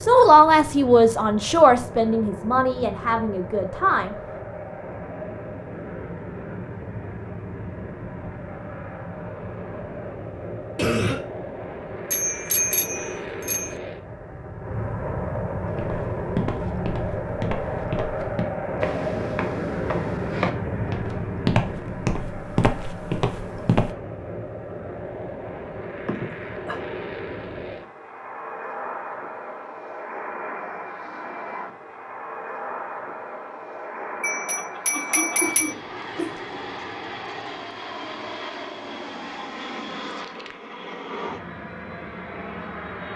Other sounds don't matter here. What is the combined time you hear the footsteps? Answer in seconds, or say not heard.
8 s.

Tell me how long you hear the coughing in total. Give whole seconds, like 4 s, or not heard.
3 s.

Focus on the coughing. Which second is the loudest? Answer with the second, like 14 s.
11 s.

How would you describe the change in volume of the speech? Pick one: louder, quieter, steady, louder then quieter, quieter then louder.
quieter.